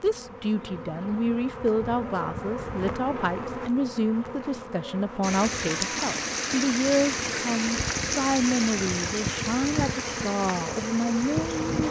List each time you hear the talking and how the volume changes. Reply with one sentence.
You can hear the talking from 0.0 to 11.8 s, at a steady volume.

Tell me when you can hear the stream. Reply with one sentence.
You can hear the stream from 5.2 to 11.8 s.